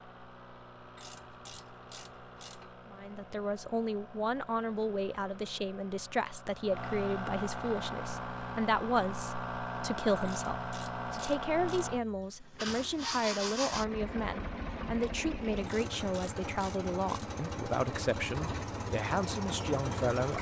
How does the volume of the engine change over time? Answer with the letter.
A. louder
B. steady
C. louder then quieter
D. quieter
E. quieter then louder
A.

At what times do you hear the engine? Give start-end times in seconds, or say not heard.
0.0-20.3.